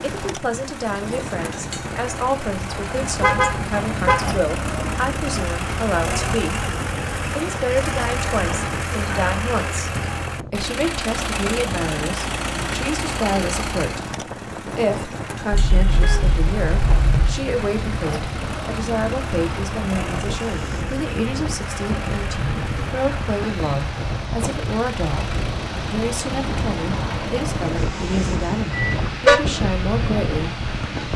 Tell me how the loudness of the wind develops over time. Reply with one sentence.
The loudness of the wind goes up.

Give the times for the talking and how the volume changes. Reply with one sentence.
You can hear the talking from 0.0 to 6.6 s, at a steady volume; from 7.3 to 14.0 s, at a steady volume; and from 14.7 to 31.1 s, at a steady volume.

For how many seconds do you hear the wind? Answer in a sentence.
You can hear the wind for 31 seconds altogether.